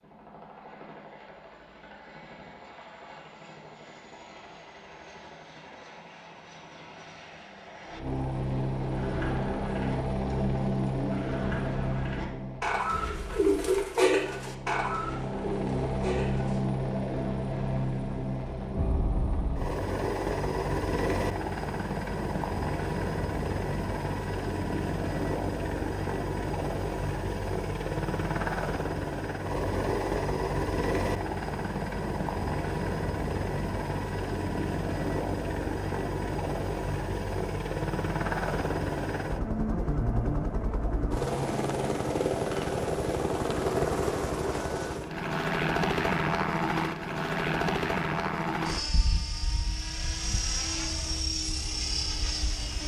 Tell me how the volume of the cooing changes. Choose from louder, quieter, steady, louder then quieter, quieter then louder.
louder then quieter.